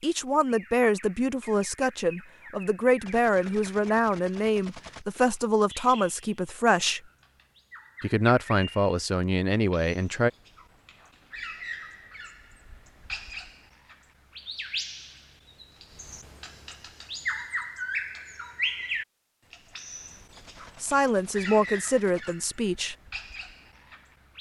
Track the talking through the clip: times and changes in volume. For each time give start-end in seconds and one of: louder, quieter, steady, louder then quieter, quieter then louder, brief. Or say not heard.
0.0-7.0 steady
8.0-10.3 brief
20.8-22.9 brief.